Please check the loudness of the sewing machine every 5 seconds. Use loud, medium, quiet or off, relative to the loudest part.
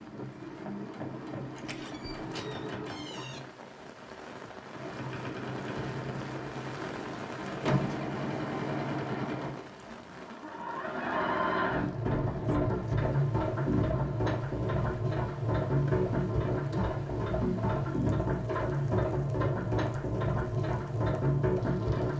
medium, medium, loud, loud, loud.